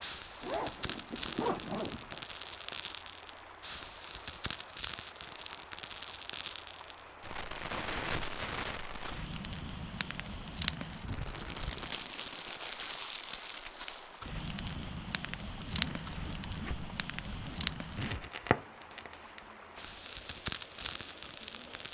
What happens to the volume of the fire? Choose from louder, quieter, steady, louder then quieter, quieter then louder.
steady.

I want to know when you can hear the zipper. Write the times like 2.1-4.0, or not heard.
0.4-2.2, 15.6-18.3.